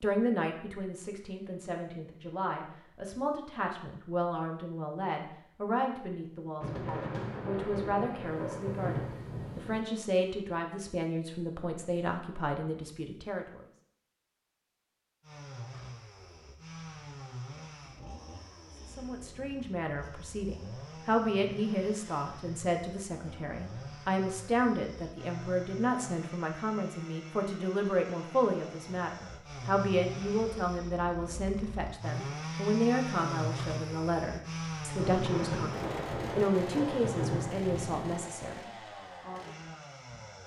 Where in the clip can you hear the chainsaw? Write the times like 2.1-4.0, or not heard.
15.2-40.4.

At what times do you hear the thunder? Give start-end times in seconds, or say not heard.
6.6-9.8, 35.0-38.2.